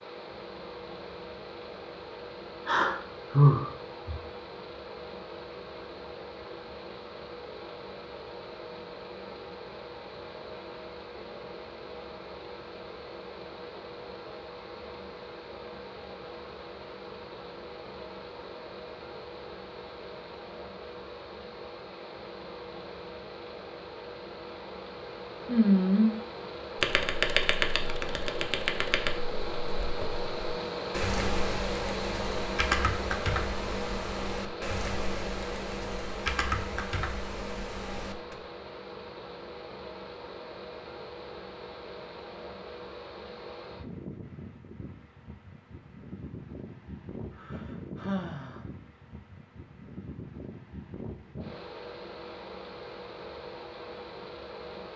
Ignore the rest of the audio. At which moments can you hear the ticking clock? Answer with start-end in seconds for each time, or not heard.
not heard.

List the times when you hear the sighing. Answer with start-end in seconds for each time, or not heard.
2.6-4.2, 25.4-26.1, 47.4-48.6.